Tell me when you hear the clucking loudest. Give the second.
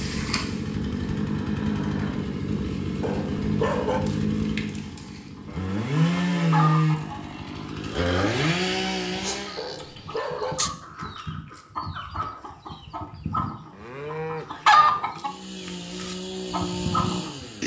15 s.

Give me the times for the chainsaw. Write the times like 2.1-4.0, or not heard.
0.0-9.7, 15.1-17.6.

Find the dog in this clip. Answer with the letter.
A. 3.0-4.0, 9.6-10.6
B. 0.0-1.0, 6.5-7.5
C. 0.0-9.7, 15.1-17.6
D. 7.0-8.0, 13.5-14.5
A.